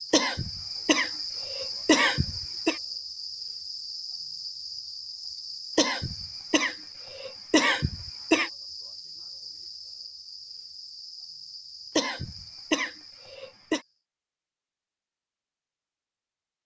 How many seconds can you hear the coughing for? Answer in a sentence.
The coughing can be heard for 7 seconds in total.